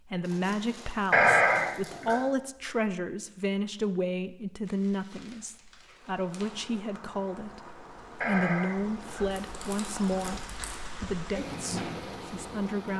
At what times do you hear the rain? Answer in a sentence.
You can hear the rain from 6.0 to 12.9 s.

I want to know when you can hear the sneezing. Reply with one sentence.
The sneezing can be heard from 1.1 to 2.2 s and from 8.2 to 9.3 s.